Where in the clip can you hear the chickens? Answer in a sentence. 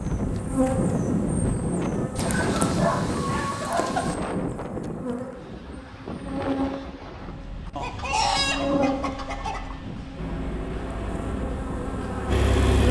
You can hear the chickens from 2.1 to 4.2 s and from 7.8 to 9.7 s.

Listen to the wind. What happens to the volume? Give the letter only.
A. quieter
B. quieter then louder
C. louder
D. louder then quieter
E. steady
A.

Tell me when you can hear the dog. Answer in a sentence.
You can hear the dog from 2.2 to 4.0 s.